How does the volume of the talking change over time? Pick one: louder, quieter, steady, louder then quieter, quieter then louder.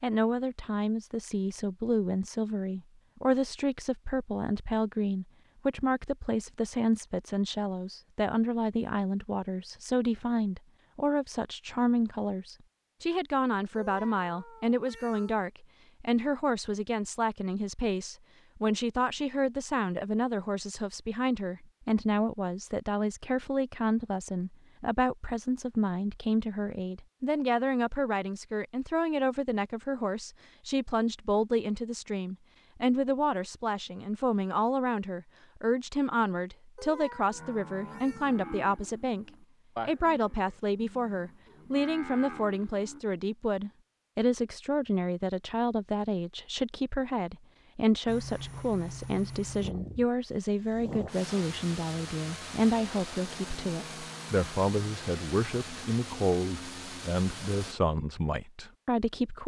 steady.